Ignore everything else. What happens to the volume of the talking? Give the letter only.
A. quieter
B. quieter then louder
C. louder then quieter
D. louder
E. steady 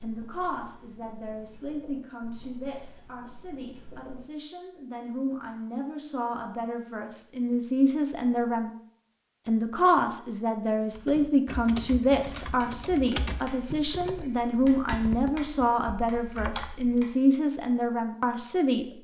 D.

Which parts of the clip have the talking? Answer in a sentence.
The talking can be heard from 0.0 to 8.7 s and from 9.4 to 18.9 s.